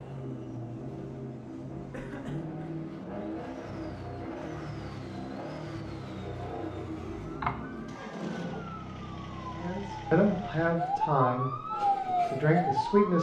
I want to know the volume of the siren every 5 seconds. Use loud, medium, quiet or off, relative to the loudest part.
off, quiet, loud.